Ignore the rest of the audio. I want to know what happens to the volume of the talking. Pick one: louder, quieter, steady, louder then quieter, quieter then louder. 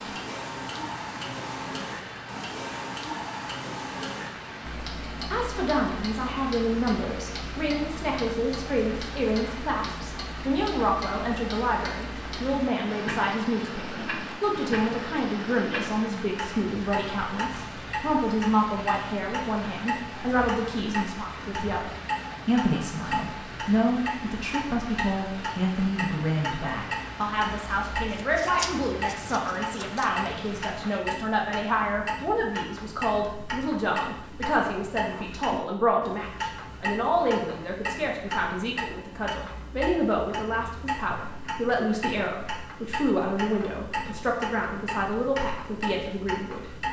steady.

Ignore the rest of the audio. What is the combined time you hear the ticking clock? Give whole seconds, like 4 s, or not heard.
47 s.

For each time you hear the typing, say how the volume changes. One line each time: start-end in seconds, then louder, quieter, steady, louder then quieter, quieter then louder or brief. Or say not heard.
not heard.